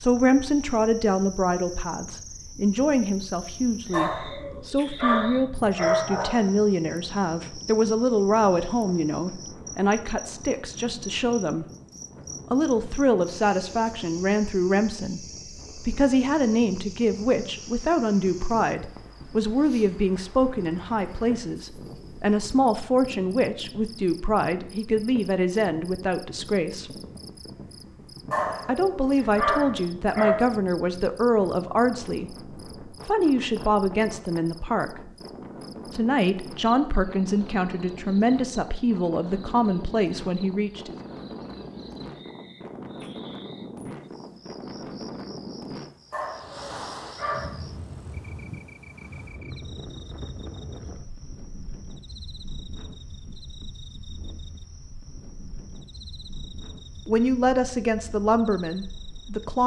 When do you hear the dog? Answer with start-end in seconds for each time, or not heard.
3.9-6.5, 28.3-30.4, 46.1-47.6.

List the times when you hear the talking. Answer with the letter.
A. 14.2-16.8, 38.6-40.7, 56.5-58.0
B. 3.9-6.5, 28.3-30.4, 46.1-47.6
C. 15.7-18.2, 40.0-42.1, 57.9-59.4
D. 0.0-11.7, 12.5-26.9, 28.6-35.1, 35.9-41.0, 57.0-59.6
D.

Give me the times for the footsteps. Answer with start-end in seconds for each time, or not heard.
not heard.